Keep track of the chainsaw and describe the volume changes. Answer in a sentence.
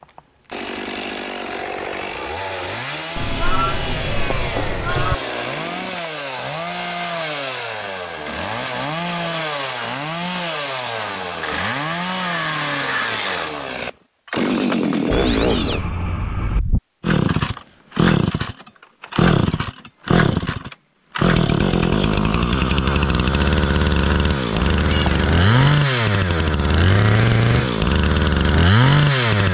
The loudness of the chainsaw goes up.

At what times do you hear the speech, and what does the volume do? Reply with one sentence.
You can't hear the speech here.